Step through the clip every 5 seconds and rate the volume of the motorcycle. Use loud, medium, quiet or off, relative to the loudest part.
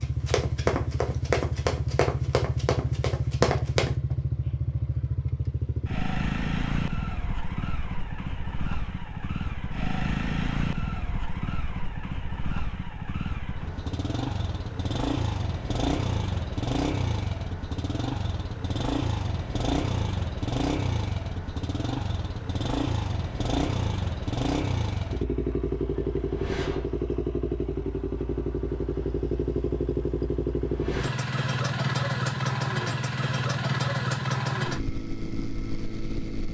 loud, medium, medium, loud, loud, loud, loud, medium.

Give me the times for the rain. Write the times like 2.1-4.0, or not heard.
not heard.